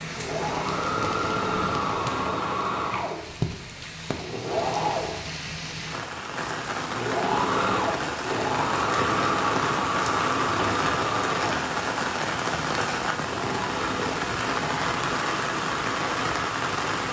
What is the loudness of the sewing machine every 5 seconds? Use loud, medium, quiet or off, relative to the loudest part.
loud, loud, loud, medium.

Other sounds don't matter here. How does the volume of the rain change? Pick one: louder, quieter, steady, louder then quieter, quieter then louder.
louder.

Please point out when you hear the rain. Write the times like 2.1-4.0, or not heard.
0.0-17.0.